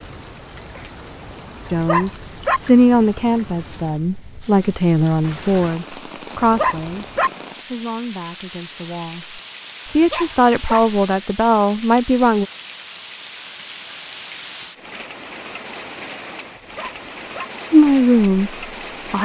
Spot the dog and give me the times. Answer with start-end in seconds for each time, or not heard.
1.6-2.6, 6.4-7.3, 9.8-10.8, 16.6-17.4.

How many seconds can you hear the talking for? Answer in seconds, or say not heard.
12 s.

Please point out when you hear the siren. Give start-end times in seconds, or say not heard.
not heard.